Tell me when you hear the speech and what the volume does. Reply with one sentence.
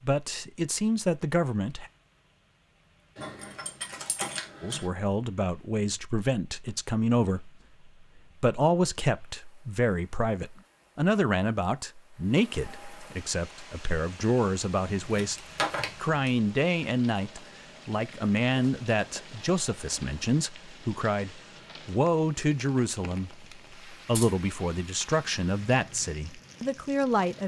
The speech can be heard briefly from 0.0 to 1.9 s; and from 4.6 to 27.4 s, at a steady volume.